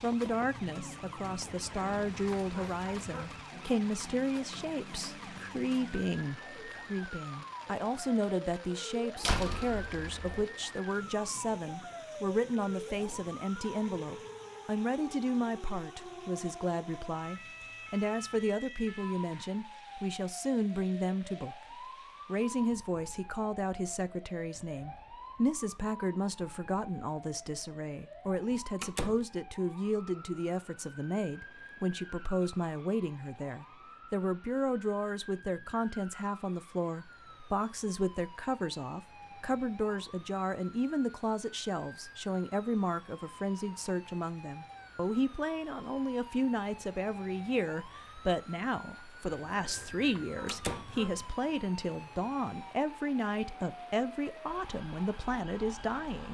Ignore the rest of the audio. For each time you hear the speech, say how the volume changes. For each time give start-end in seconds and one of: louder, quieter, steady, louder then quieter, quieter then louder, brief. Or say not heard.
0.0-21.6 steady
22.2-56.2 steady.